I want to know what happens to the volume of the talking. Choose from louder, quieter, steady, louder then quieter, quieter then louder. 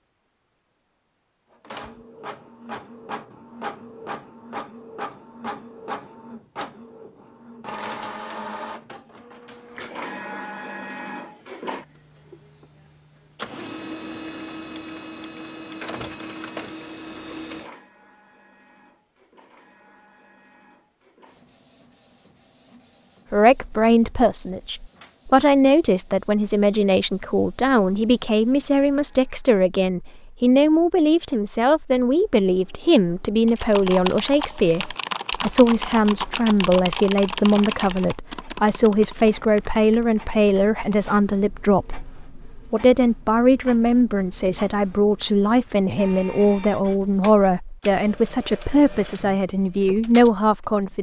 steady.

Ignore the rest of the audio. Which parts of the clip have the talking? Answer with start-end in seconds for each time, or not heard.
23.3-50.9.